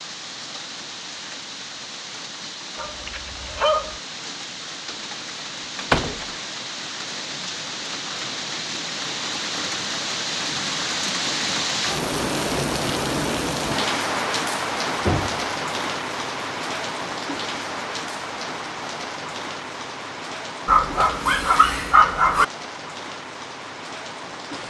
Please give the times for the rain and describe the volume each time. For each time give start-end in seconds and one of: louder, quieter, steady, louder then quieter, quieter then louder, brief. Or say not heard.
0.0-24.6 louder then quieter.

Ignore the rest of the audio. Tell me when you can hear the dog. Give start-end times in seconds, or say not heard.
2.8-4.0, 20.6-22.4.